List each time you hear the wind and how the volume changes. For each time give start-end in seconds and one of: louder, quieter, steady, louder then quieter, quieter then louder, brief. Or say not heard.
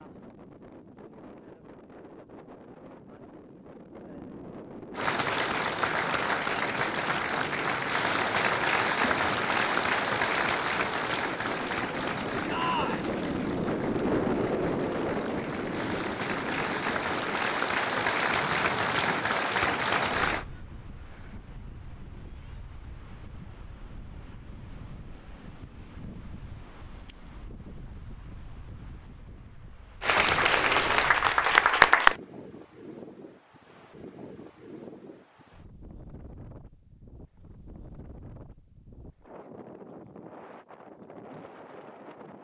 0.0-42.3 louder then quieter.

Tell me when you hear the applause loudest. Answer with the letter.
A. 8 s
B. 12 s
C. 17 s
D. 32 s
D.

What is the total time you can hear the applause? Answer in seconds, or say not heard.
18 s.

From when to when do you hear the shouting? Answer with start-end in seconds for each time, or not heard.
12.4-13.1.